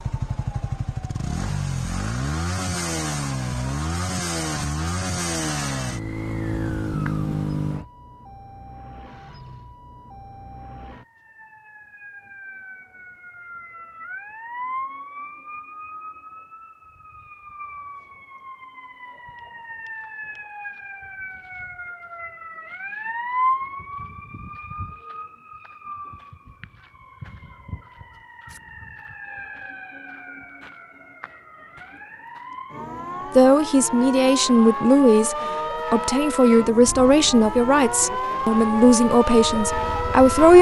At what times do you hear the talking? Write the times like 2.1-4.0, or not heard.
33.4-40.5.